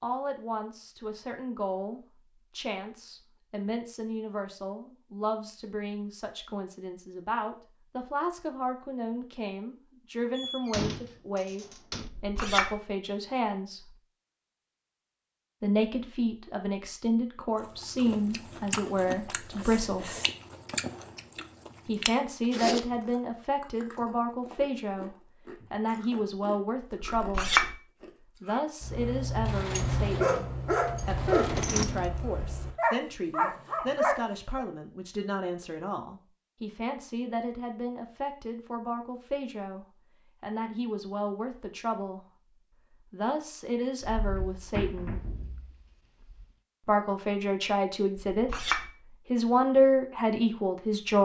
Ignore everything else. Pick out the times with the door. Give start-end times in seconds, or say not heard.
10.3-12.1, 29.4-32.1, 44.0-46.5.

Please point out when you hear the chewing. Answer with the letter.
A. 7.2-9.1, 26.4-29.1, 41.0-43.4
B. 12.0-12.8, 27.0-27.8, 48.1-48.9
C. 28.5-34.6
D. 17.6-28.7
D.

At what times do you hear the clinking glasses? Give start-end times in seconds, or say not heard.
12.0-12.8, 27.0-27.8, 48.1-48.9.